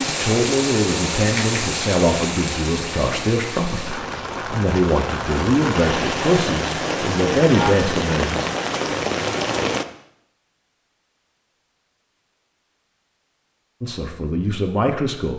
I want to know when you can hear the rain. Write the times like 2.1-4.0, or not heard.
0.0-9.8.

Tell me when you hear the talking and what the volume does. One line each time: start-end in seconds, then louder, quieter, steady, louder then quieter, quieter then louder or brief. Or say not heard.
0.1-8.4 steady
13.8-15.3 brief.